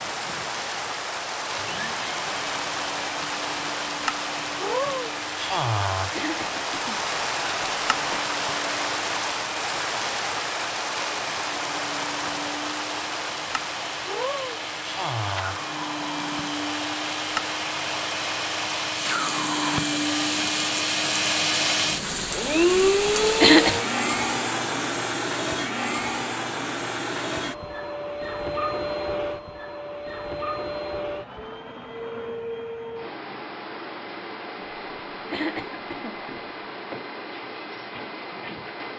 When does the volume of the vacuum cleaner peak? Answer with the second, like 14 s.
23 s.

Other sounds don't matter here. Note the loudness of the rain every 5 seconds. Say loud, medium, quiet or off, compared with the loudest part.
loud, loud, loud, loud, loud, off, off, off.